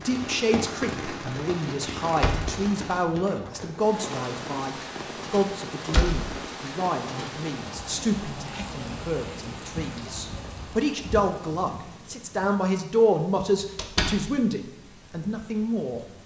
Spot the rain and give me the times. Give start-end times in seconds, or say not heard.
0.0-16.2.